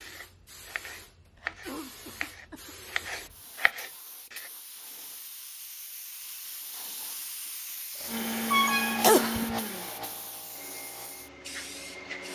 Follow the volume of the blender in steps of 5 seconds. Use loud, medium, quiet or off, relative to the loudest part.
off, loud, quiet.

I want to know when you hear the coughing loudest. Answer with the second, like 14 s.
9 s.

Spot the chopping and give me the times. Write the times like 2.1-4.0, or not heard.
0.0-4.5.